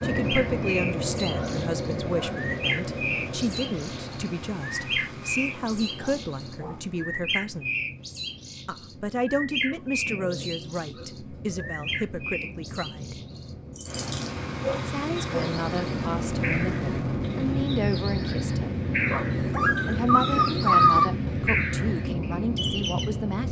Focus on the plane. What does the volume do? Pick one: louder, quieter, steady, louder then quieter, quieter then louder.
quieter then louder.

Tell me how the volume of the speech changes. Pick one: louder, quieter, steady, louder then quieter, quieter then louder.
steady.